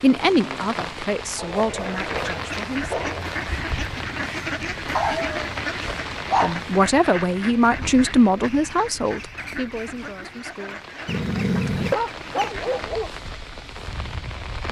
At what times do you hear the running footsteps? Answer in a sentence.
You can't hear the running footsteps here.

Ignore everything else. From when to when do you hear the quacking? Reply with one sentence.
The quacking can be heard from 1.6 to 12.9 s.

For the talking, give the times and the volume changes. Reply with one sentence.
The talking can be heard briefly from 0.0 to 3.0 s; and from 6.4 to 10.8 s, getting quieter.